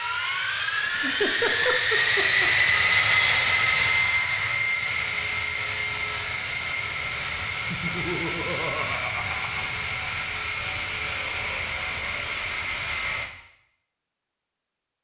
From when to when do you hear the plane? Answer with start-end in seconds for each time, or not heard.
0.0-13.2.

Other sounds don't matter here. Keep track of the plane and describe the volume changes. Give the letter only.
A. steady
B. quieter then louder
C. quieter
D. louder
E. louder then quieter
C.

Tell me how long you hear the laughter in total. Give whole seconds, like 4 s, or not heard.
4 s.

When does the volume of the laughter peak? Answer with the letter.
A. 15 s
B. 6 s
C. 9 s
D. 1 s
D.